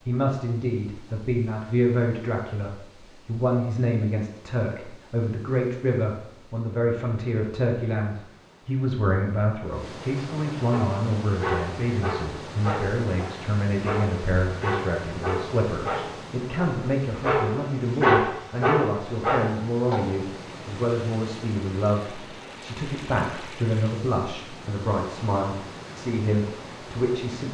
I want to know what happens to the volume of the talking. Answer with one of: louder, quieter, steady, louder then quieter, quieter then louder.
steady.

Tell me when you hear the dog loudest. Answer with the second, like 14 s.
18 s.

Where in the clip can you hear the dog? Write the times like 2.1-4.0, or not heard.
10.7-20.1.